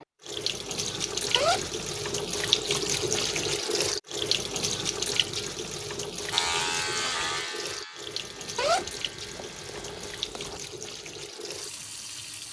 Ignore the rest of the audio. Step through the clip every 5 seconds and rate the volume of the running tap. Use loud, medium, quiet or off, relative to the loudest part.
loud, medium, medium.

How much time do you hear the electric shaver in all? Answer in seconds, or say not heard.
4 s.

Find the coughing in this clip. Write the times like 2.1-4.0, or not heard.
not heard.